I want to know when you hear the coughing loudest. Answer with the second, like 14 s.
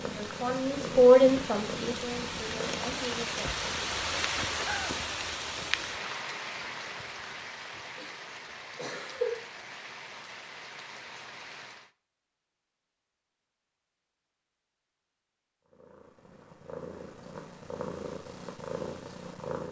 9 s.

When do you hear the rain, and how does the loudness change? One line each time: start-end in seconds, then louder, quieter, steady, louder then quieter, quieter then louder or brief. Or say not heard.
0.0-11.9 louder then quieter.